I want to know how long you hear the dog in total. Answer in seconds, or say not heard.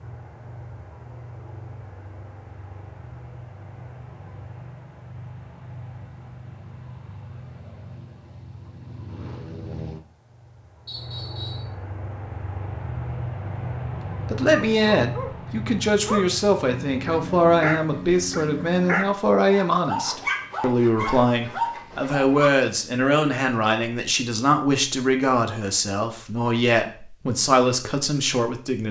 8 s.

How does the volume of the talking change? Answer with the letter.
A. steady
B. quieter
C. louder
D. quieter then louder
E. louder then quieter
A.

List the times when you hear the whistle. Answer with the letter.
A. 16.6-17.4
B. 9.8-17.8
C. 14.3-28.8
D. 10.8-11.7
D.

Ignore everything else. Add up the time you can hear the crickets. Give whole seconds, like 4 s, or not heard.
not heard.